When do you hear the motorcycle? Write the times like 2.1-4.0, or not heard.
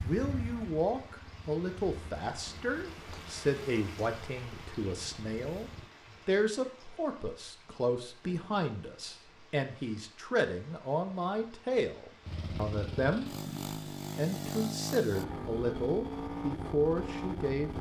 0.0-5.9, 12.2-17.7.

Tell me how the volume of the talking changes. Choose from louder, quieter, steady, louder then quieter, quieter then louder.
steady.